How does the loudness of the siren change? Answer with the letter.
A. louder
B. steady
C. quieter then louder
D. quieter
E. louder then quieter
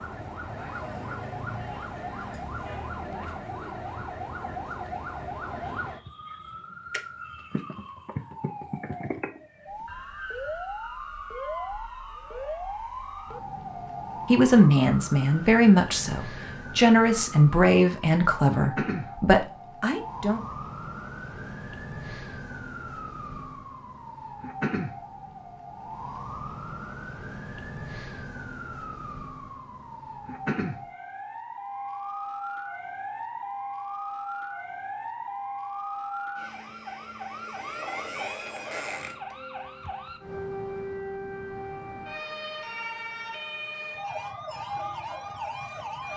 B.